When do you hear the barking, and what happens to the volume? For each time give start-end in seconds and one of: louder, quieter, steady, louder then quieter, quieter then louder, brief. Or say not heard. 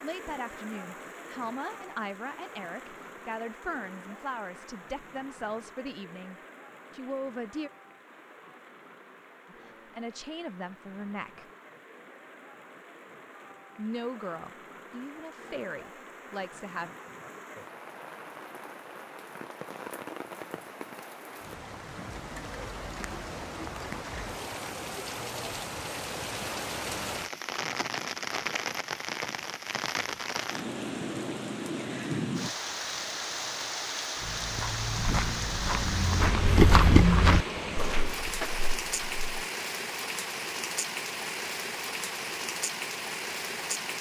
not heard.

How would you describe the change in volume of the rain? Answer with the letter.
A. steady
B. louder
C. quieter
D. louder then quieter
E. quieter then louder
B.